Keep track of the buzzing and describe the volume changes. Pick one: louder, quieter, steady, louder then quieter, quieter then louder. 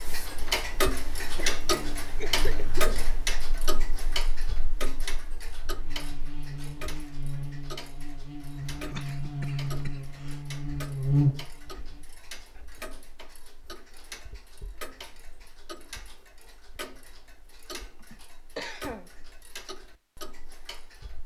quieter then louder.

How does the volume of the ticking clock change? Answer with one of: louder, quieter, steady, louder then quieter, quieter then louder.
quieter.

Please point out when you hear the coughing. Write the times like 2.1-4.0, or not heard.
1.4-3.0, 8.6-10.4, 18.0-19.1.